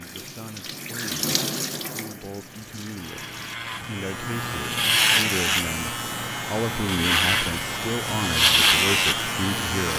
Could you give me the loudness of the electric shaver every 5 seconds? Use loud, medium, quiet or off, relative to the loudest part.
medium, loud.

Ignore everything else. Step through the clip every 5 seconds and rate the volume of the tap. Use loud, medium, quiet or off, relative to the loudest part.
loud, off.